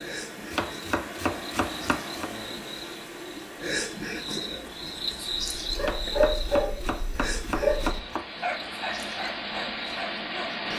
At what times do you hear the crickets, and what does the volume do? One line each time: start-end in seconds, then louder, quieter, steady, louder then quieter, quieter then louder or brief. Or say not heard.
0.0-10.7 louder then quieter.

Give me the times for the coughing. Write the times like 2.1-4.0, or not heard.
not heard.